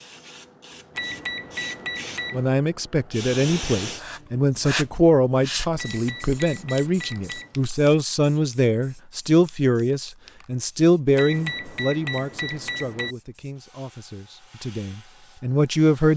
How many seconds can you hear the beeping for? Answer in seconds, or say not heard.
5 s.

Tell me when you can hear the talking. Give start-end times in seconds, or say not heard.
2.3-16.1.